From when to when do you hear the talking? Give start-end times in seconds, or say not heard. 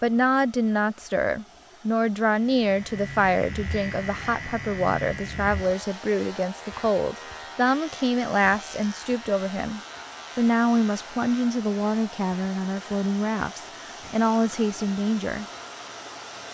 0.0-15.4.